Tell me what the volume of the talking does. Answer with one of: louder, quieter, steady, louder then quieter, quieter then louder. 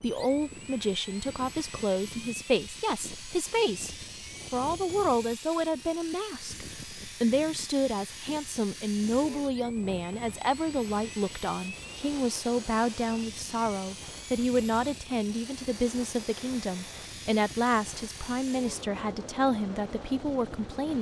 steady.